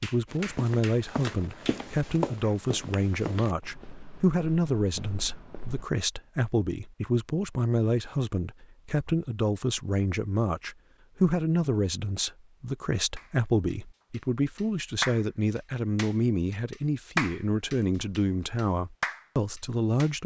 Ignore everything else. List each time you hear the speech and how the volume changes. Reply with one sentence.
You can hear the speech from 0.0 to 20.2 s, at a steady volume.